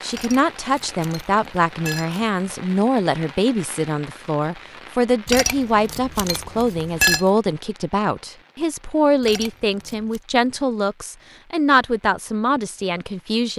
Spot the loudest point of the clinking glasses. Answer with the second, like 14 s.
7 s.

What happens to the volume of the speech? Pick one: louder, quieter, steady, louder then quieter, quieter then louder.
steady.